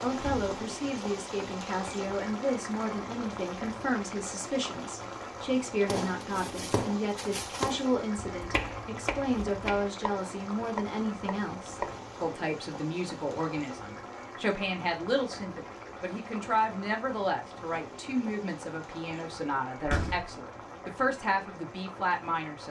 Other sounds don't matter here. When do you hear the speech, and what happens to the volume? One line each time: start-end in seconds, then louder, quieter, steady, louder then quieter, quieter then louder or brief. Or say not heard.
0.0-22.6 steady.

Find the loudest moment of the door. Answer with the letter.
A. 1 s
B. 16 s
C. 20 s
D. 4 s
C.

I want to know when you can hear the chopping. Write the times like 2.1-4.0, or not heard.
5.8-12.0.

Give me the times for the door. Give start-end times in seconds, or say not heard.
0.1-0.6, 19.8-20.4.